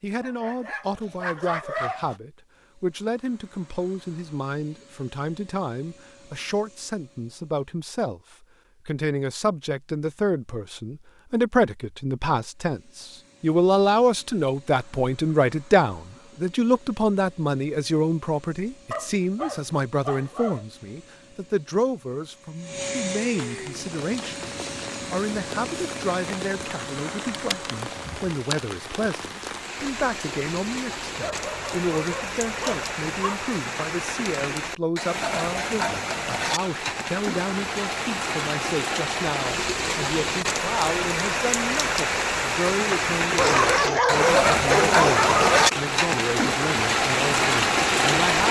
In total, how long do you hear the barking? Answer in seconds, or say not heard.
8 s.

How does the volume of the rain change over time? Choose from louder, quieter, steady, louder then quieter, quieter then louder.
louder.